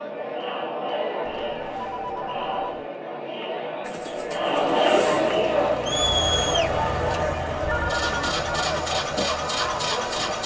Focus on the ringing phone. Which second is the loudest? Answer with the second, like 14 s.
8 s.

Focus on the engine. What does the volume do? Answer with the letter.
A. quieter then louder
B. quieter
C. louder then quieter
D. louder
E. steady
D.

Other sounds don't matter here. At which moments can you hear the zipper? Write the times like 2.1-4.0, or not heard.
3.9-5.3.